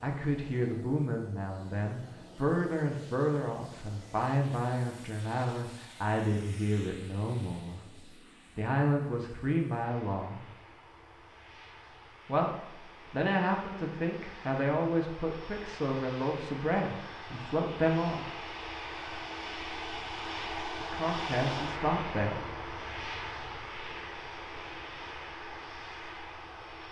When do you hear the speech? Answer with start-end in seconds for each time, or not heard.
0.0-10.4, 12.2-18.7, 20.8-22.4.